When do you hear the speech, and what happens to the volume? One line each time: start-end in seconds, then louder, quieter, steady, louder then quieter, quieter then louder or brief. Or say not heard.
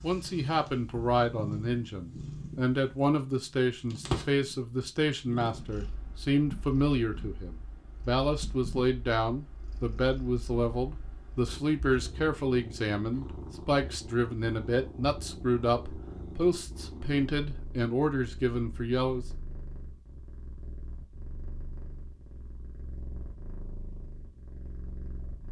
0.0-19.2 steady.